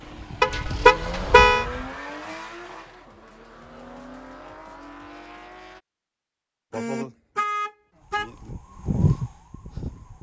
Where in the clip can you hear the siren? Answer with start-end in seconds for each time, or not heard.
0.0-2.0, 8.1-10.1.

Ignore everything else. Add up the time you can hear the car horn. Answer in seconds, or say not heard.
3 s.